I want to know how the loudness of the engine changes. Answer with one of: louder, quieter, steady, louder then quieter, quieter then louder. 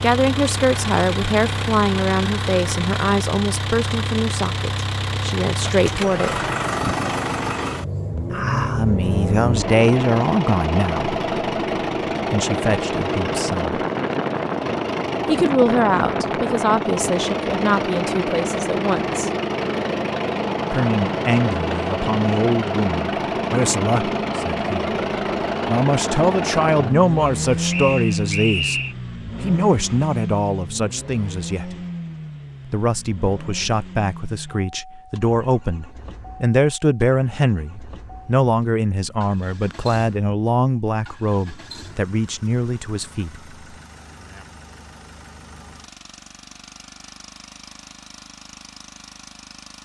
quieter.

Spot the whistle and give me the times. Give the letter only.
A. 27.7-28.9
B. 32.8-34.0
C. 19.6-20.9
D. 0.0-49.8
A.